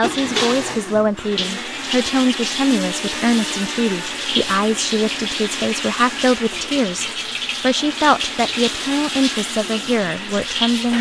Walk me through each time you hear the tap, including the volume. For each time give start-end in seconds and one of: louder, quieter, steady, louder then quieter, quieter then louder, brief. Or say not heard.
0.0-10.9 steady.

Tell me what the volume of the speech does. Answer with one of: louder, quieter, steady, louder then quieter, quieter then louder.
steady.